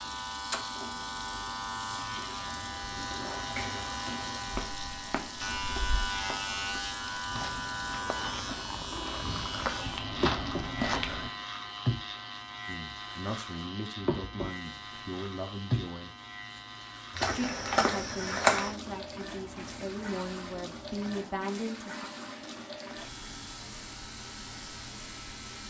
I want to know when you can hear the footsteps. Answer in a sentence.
The footsteps can be heard from 4.5 to 11.3 s and from 17.1 to 18.8 s.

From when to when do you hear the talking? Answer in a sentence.
The talking can be heard from 12.7 to 16.1 s and from 17.2 to 22.1 s.